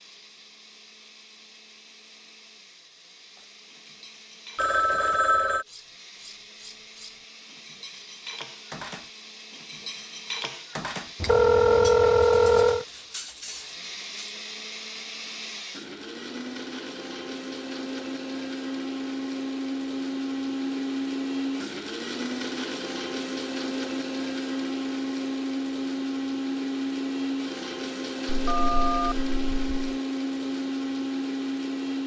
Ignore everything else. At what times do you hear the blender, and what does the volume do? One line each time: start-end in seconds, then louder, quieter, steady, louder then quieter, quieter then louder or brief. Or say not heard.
0.0-32.0 louder.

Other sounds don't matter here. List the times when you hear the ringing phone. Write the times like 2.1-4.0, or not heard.
4.5-5.7, 11.2-12.8, 28.2-29.9.